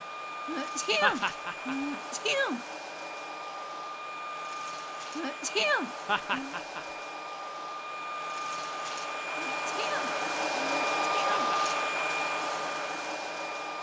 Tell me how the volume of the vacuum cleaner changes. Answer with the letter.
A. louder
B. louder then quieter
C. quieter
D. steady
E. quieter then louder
A.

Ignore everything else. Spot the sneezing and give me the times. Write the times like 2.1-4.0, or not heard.
0.5-2.6, 5.2-6.5, 9.3-11.5.